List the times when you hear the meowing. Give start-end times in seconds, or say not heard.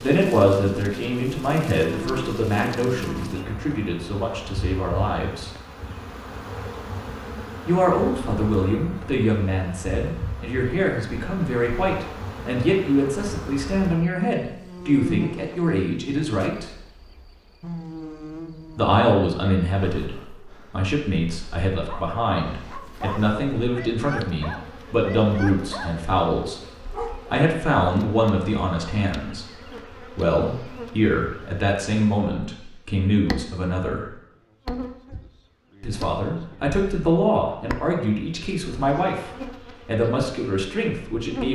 not heard.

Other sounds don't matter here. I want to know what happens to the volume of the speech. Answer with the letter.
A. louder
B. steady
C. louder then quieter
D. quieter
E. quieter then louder
B.